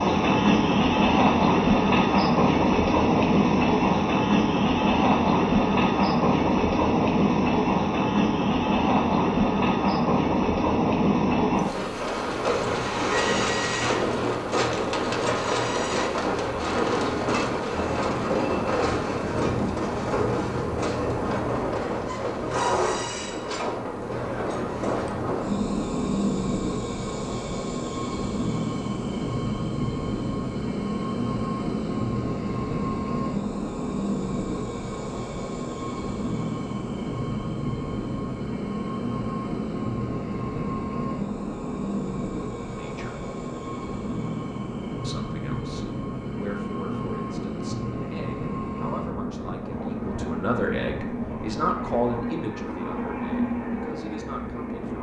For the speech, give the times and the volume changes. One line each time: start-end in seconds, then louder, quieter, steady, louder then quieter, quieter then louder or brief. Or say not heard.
42.8-43.2 brief
45.0-54.9 louder then quieter.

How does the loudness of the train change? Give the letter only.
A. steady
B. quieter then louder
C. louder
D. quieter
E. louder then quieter
D.